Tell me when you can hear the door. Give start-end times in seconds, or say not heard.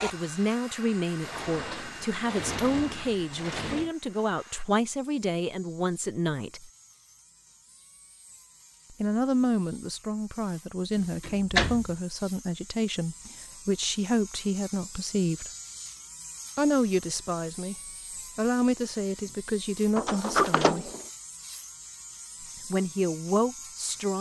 1.2-3.9, 10.9-11.9, 19.9-21.1.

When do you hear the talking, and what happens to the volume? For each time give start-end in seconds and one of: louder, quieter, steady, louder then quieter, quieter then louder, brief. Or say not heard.
0.0-6.7 steady
8.9-15.5 steady
16.6-17.8 brief
18.4-20.9 brief
22.4-24.1 brief.